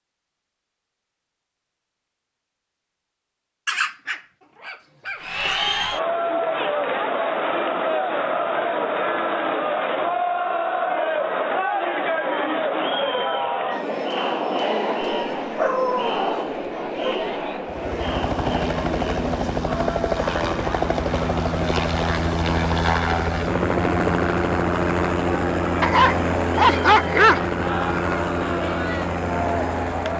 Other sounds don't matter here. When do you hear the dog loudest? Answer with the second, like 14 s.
27 s.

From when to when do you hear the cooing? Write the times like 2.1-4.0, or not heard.
not heard.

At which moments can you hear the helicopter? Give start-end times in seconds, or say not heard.
17.6-30.1.